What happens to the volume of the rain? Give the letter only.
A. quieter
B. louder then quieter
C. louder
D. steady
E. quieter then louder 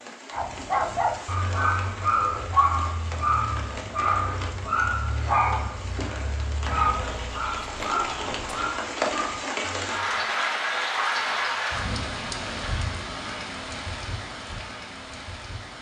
B.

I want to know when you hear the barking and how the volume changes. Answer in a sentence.
You can hear the barking from 0.3 to 10.3 s, getting quieter.